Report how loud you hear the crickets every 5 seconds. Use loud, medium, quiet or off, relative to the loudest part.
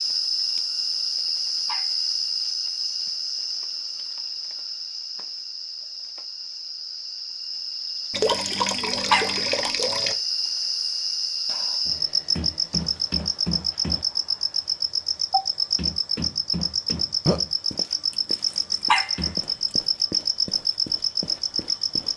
loud, medium, loud, loud, loud.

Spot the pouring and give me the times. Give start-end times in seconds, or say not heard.
8.1-10.2.